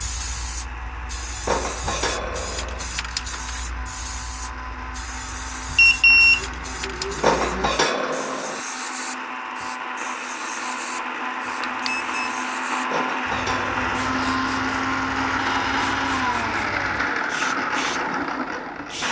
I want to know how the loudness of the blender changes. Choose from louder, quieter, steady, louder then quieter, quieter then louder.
louder.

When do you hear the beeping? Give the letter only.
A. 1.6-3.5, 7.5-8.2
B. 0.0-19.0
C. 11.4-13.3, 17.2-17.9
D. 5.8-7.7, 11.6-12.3
D.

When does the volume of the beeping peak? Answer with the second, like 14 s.
6 s.